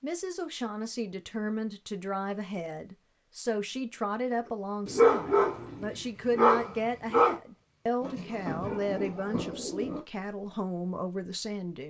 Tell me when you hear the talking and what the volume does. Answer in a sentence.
You can hear the talking from 0.0 to 11.8 s, at a steady volume.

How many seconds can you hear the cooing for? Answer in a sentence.
You can hear the cooing for 2 seconds altogether.